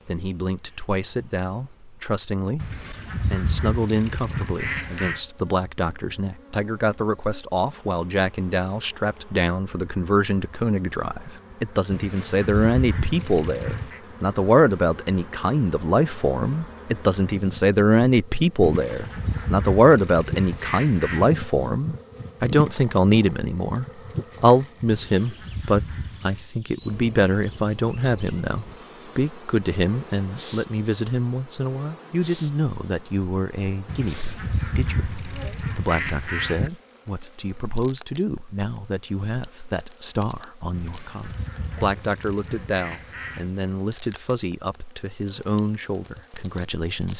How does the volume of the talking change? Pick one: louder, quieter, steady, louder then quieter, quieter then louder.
louder then quieter.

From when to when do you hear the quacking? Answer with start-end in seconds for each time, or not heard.
2.5-5.2, 11.9-14.0, 18.6-21.3, 24.9-26.4, 33.9-36.7, 40.7-43.5.